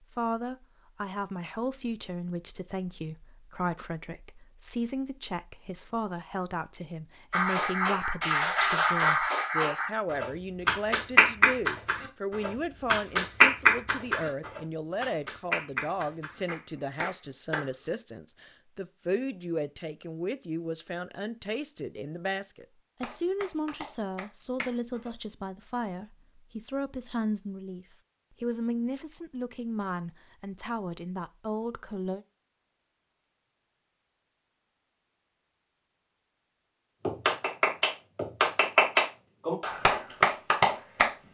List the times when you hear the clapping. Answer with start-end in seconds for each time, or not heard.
7.3-17.7, 23.0-25.1, 37.0-41.1.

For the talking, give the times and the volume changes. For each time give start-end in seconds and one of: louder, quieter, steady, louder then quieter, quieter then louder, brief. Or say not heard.
0.0-32.2 steady.